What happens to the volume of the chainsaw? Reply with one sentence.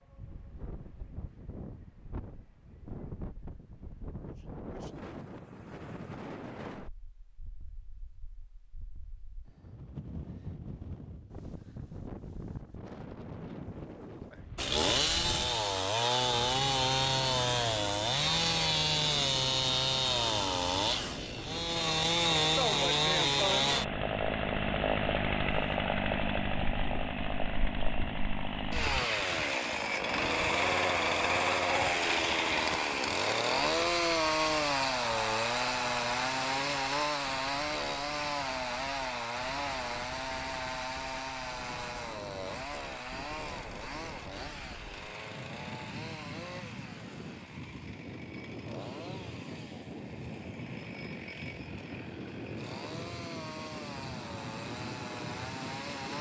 The volume of the chainsaw goes down.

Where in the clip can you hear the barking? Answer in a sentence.
You can't hear the barking here.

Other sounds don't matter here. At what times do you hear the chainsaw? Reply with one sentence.
You can hear the chainsaw from 14.6 to 56.1 s.